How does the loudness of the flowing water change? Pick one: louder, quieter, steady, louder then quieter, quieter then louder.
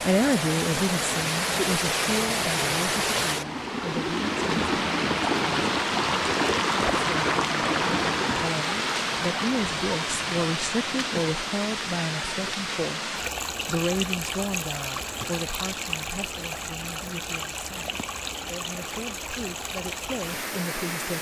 quieter.